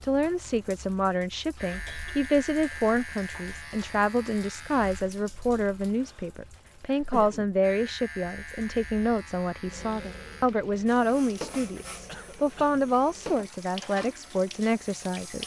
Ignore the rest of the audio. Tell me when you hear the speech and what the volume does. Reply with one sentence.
You can hear the speech from 0.0 to 15.4 s, at a steady volume.